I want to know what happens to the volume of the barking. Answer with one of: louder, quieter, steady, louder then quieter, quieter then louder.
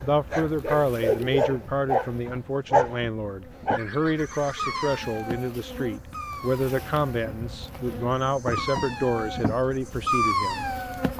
quieter then louder.